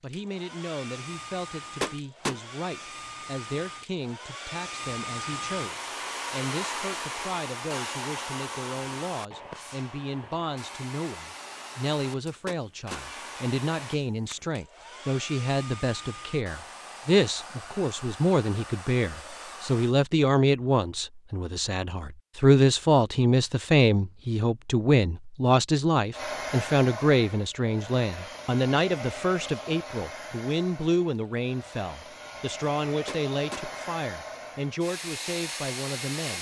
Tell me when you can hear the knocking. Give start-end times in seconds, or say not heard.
1.8-2.4, 12.4-13.1, 33.0-33.6.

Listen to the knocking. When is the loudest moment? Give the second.
2 s.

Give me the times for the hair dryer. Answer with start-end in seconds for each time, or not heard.
0.0-19.9, 26.1-36.3.